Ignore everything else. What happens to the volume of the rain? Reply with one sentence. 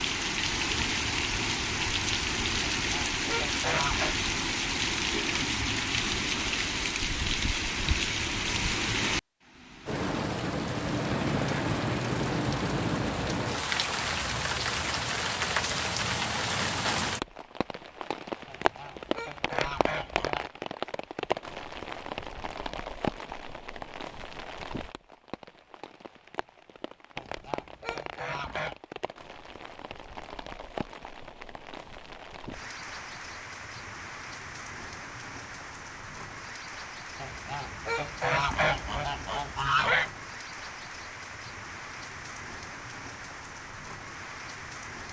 The loudness of the rain goes down.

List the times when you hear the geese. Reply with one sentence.
The geese can be heard from 2.8 to 4.2 s, from 18.4 to 20.5 s, from 27.1 to 28.8 s and from 37.2 to 40.1 s.